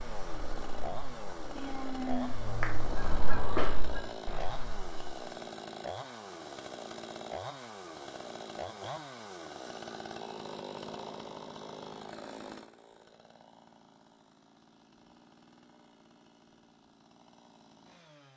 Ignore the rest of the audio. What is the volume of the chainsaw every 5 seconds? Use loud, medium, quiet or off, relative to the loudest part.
loud, loud, loud, quiet.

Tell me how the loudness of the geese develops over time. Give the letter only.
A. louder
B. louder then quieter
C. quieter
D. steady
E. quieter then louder
B.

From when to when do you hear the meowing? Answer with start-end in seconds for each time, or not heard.
1.6-2.4.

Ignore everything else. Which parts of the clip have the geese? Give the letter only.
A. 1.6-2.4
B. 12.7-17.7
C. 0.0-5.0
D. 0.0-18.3
C.